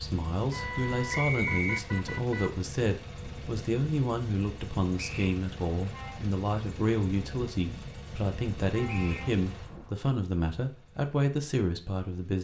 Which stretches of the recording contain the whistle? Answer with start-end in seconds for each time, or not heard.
1.1-1.8, 5.0-5.4, 8.8-9.3.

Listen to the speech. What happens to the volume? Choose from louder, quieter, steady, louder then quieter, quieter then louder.
steady.